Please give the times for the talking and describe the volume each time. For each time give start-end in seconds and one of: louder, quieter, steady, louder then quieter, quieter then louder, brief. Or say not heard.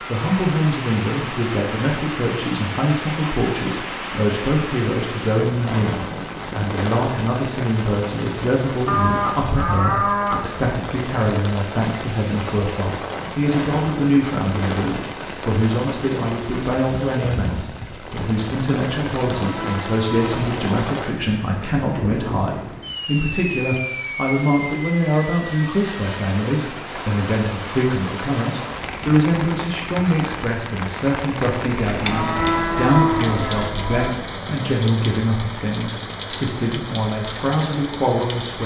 0.1-38.6 steady.